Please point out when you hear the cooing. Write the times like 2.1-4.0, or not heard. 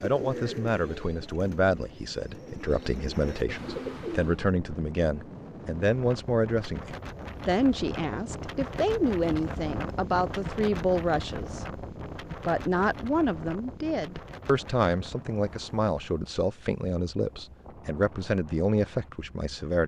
0.0-4.5.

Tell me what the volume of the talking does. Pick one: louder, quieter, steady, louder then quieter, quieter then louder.
steady.